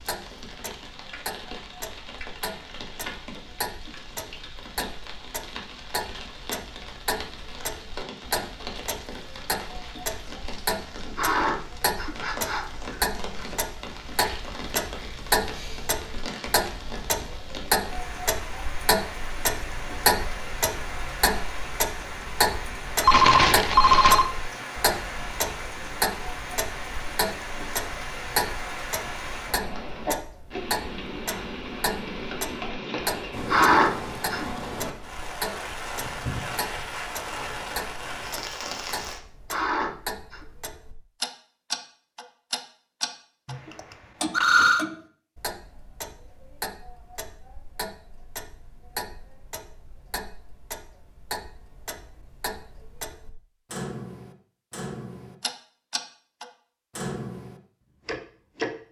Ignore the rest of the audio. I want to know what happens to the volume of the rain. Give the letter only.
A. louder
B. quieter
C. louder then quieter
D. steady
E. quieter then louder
A.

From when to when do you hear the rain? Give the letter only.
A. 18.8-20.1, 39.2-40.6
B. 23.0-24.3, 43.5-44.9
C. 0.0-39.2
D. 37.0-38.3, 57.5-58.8
C.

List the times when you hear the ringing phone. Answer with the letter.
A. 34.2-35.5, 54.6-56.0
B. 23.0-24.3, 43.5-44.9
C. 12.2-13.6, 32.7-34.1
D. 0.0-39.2
B.